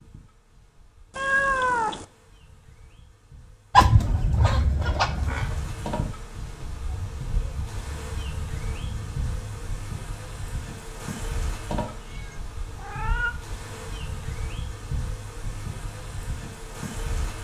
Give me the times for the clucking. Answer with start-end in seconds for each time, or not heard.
3.7-9.8.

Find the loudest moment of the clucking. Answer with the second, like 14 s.
4 s.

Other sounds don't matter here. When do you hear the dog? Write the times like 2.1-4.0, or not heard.
not heard.